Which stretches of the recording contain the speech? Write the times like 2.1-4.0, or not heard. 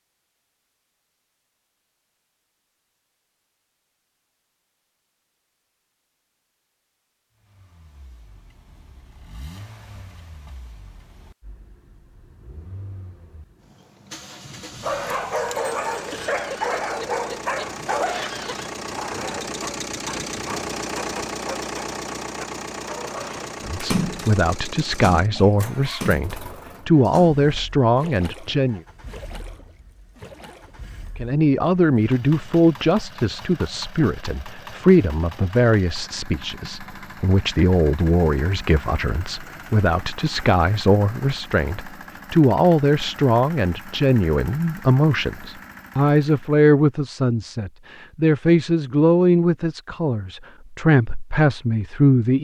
23.6-28.8, 31.1-52.3.